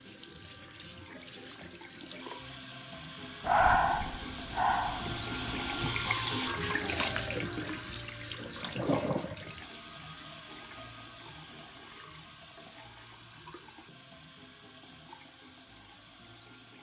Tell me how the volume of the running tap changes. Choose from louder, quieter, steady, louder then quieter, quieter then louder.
louder then quieter.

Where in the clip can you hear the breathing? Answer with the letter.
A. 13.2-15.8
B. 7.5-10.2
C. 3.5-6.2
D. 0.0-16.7
C.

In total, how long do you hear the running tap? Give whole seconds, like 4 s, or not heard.
17 s.